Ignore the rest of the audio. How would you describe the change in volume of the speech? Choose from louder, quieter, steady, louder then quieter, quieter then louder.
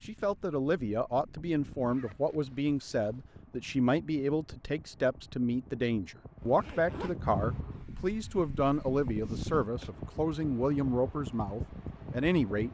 steady.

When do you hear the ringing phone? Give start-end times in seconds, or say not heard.
not heard.